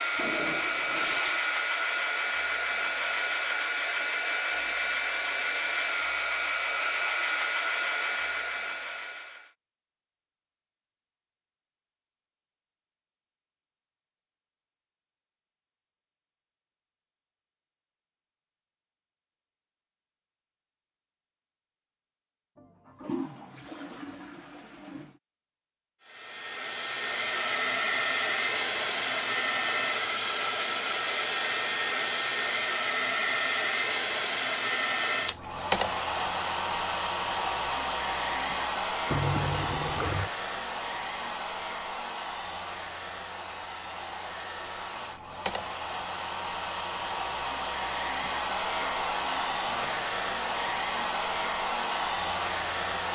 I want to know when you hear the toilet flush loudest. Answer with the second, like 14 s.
40 s.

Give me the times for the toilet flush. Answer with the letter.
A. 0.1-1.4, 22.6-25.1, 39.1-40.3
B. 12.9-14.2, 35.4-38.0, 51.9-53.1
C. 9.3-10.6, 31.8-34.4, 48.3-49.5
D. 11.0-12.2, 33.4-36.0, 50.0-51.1
A.